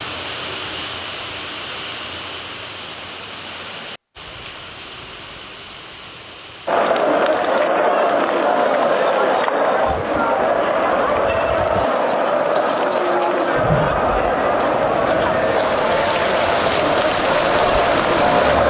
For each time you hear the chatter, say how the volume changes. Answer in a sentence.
The chatter can be heard from 6.7 to 18.6 s, at a steady volume.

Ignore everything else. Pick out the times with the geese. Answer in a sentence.
You can't hear the geese here.